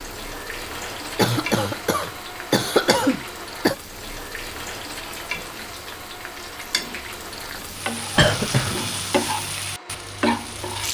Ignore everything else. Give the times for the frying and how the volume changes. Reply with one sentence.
You can hear the frying from 0.0 to 10.8 s, getting louder.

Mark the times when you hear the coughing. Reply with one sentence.
The coughing can be heard from 1.1 to 3.8 s and from 8.2 to 8.8 s.